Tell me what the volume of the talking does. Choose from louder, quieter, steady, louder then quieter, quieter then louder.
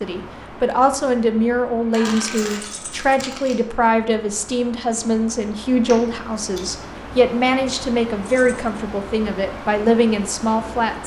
steady.